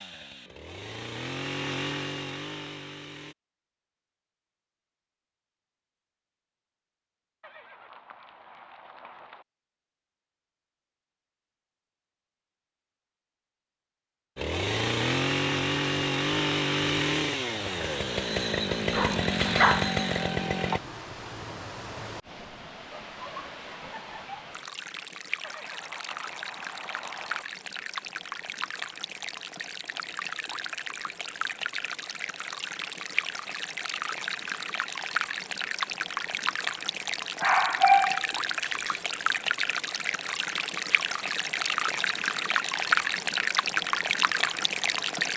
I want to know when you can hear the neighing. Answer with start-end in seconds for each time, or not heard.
7.4-9.4, 25.4-27.4.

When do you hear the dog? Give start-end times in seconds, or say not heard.
18.9-19.9, 37.4-39.0.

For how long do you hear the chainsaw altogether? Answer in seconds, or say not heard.
10 s.